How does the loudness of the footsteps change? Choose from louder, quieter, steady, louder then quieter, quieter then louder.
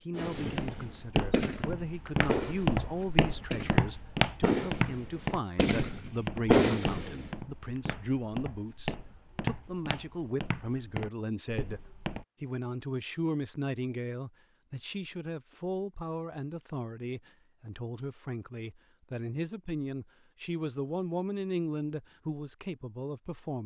quieter.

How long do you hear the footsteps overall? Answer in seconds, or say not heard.
12 s.